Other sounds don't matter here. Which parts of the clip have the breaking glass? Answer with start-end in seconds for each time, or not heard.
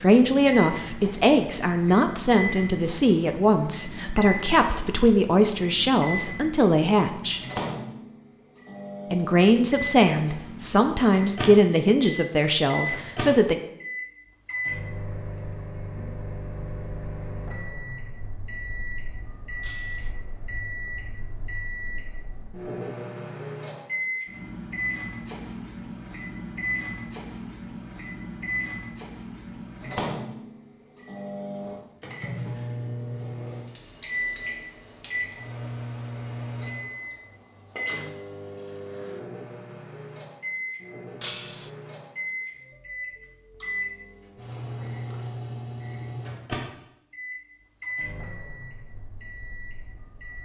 19.6-20.1, 41.2-41.7.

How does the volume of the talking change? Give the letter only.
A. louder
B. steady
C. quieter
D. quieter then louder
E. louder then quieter
B.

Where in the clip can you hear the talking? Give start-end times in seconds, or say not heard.
0.0-7.4, 9.1-13.6.